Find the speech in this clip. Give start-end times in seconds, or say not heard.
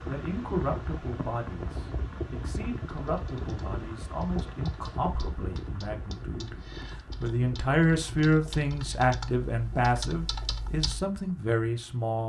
0.1-6.6, 7.2-12.2.